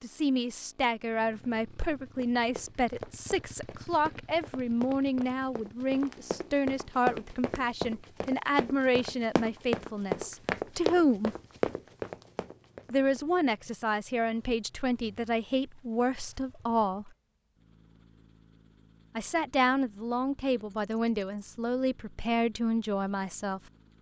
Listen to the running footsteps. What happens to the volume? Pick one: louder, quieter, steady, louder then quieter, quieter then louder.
louder.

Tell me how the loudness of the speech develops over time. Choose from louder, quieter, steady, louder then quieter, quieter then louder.
steady.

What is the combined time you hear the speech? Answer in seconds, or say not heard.
20 s.